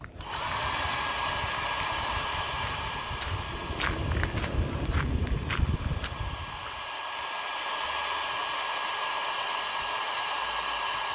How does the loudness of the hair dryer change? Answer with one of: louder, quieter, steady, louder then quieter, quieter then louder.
quieter then louder.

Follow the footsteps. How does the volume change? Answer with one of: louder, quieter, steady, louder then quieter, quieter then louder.
louder.